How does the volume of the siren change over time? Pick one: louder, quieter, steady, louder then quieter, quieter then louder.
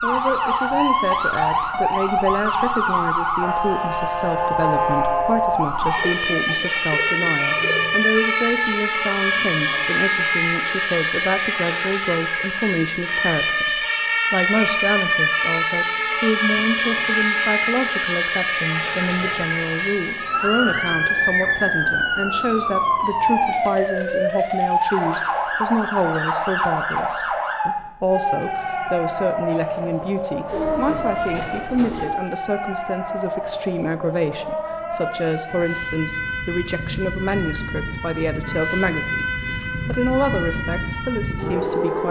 quieter.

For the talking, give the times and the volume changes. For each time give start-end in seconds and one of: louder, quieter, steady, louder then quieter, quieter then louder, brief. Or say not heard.
0.0-42.0 steady.